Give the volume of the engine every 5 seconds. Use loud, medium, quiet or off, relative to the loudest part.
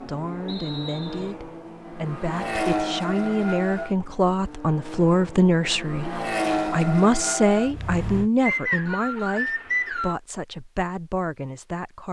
loud, loud, off.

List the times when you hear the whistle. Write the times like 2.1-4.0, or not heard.
0.5-1.4, 8.4-10.2.